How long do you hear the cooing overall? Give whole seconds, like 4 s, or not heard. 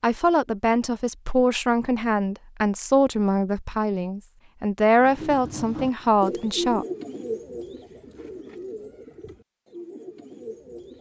6 s.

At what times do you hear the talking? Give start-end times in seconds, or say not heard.
0.0-6.8.